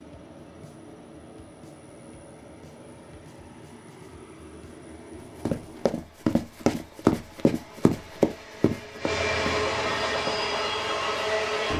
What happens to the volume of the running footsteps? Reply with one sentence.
The loudness of the running footsteps goes down.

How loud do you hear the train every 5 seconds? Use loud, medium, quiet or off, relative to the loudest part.
quiet, medium, loud.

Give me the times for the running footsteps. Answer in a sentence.
You can hear the running footsteps from 5.5 to 10.4 s.